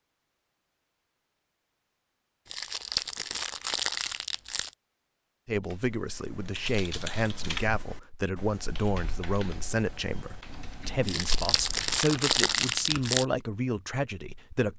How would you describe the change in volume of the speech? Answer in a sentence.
The loudness of the speech stays about the same.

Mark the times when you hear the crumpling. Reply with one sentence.
The crumpling can be heard from 2.5 to 4.8 s and from 11.1 to 13.2 s.